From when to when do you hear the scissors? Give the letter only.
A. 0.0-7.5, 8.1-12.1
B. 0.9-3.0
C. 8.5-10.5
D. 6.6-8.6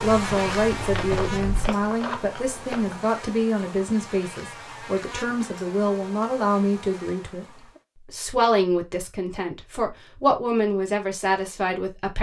B.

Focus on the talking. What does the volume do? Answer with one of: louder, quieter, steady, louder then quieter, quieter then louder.
steady.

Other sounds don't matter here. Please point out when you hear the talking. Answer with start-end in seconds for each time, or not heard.
0.0-7.5, 8.1-12.1.